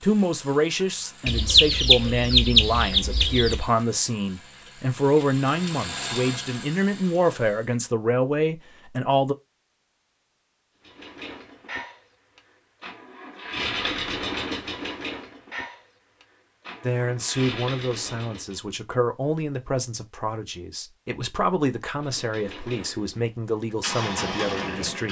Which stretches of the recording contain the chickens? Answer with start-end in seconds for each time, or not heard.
1.2-3.6.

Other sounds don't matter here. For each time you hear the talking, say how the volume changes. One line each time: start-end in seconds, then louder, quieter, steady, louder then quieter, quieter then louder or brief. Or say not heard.
0.0-9.3 steady
16.8-25.0 steady.